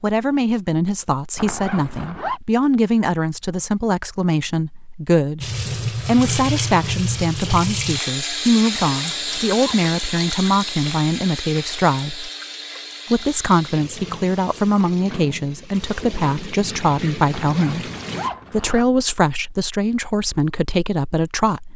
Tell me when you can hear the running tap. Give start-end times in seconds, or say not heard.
5.4-18.3.